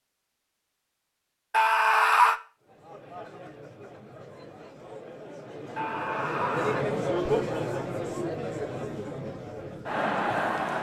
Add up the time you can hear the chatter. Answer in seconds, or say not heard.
8 s.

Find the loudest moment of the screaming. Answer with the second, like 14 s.
2 s.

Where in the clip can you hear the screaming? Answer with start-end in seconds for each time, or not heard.
1.5-2.4, 5.8-6.8.